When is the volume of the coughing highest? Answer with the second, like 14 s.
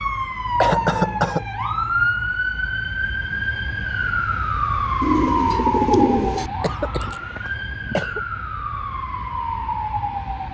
1 s.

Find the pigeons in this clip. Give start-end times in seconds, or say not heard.
5.0-6.5.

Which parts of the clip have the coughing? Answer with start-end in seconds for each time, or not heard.
0.6-1.4, 6.6-8.2.